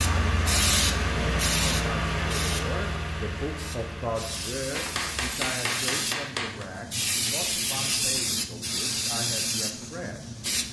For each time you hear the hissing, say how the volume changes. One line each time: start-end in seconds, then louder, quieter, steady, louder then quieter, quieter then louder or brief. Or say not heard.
0.0-10.6 quieter then louder.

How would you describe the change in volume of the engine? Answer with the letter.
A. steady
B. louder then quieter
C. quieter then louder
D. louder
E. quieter
E.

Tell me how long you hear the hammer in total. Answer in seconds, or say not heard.
2 s.